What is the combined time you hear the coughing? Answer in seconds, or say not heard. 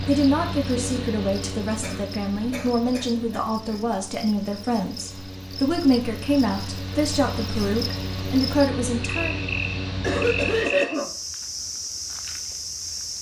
3 s.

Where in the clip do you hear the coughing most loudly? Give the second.
11 s.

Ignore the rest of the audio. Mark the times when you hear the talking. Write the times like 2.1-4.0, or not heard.
0.1-9.4.